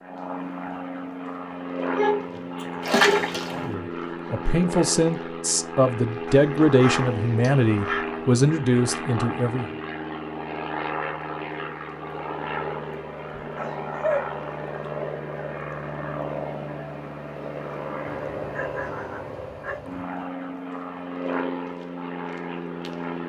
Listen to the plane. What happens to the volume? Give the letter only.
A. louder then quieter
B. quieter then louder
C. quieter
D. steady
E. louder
D.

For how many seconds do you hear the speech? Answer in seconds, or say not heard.
6 s.